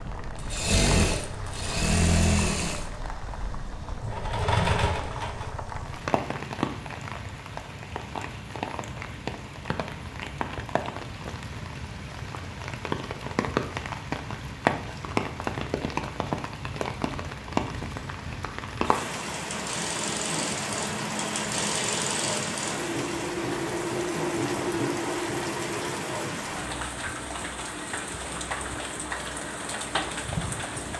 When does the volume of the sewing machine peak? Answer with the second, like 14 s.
2 s.